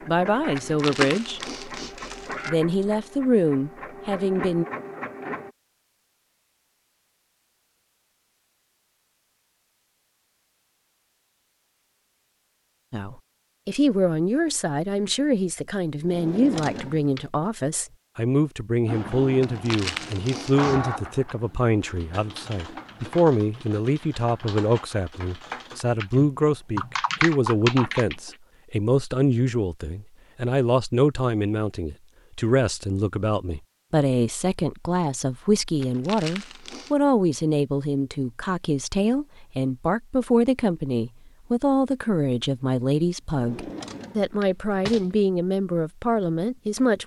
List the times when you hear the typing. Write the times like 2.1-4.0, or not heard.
21.8-28.4.